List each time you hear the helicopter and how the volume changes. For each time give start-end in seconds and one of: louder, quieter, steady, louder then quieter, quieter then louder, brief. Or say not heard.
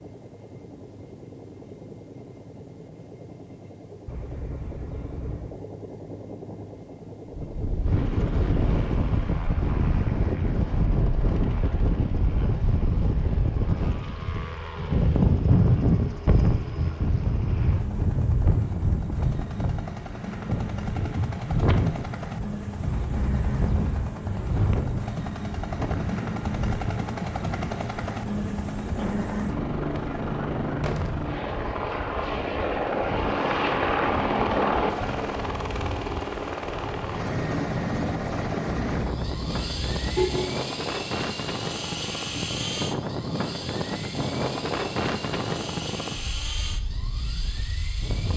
0.0-48.3 louder then quieter.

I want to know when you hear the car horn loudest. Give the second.
40 s.